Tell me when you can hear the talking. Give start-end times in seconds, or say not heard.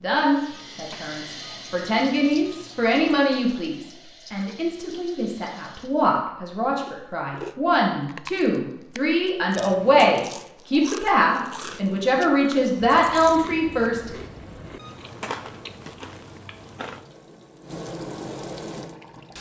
0.0-14.1.